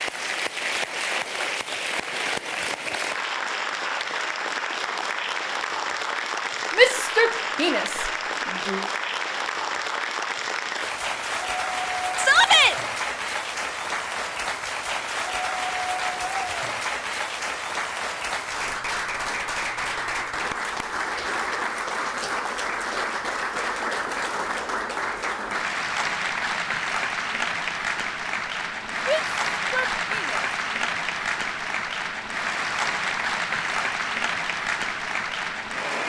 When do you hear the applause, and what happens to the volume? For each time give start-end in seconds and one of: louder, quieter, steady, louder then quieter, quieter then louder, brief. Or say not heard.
0.0-36.0 steady.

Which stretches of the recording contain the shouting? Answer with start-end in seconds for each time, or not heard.
6.8-8.8, 12.2-12.8, 29.1-30.4.